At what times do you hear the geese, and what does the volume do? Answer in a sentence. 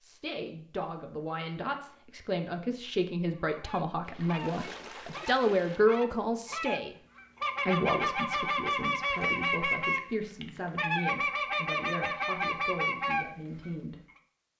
The geese can be heard from 3.5 to 13.7 s, getting louder.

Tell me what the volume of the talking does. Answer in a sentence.
The volume of the talking goes up, then down.